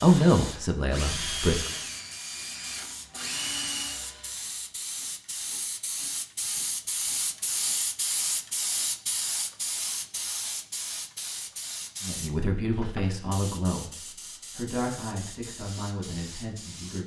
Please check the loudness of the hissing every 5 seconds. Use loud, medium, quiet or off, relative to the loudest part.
medium, loud, medium, medium.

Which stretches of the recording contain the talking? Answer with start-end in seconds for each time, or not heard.
0.0-1.7, 12.0-17.0.